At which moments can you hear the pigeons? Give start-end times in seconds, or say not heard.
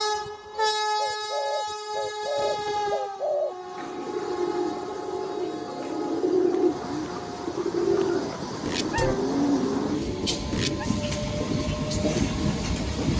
0.6-10.9.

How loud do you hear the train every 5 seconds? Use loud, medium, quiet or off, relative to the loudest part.
loud, medium, loud.